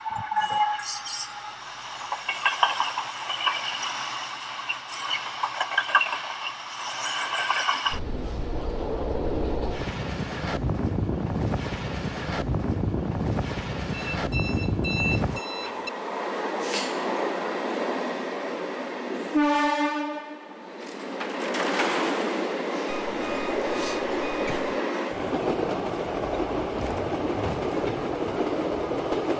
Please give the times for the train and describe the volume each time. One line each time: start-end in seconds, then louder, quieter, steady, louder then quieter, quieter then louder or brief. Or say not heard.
0.0-29.3 steady.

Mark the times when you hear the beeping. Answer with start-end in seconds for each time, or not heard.
0.1-0.7, 13.9-15.9, 22.9-24.8.